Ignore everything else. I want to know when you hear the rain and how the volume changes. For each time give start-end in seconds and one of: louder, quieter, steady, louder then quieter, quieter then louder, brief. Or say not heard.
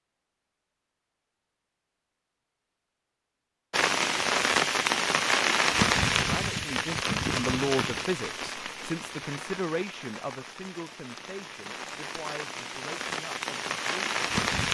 3.7-14.6 quieter then louder.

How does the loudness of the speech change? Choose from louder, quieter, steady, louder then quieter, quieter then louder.
quieter.